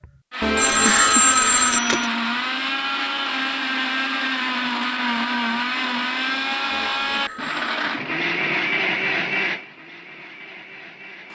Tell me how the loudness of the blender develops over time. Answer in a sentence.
The loudness of the blender stays about the same.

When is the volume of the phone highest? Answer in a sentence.
The loudest moment of the phone is at 1 second.